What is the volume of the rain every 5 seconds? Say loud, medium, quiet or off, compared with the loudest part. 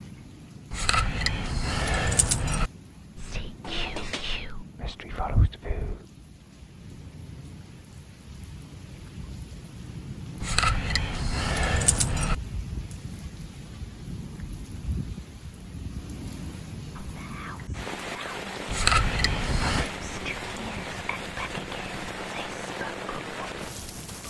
medium, medium, loud, loud, loud.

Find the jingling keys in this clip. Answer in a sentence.
The jingling keys can be heard from 0.7 to 2.7 s, from 10.4 to 12.3 s and from 18.6 to 19.9 s.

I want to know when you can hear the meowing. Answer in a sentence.
The meowing can be heard from 3.6 to 4.3 s.